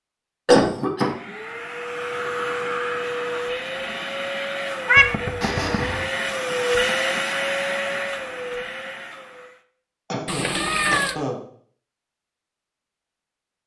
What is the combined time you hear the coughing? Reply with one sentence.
The coughing can be heard for 3 seconds in total.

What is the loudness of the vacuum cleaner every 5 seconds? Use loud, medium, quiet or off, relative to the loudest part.
loud, loud, off.